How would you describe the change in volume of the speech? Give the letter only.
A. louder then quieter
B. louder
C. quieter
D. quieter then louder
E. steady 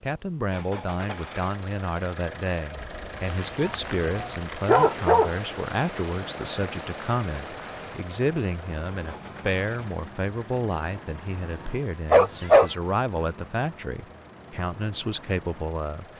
E.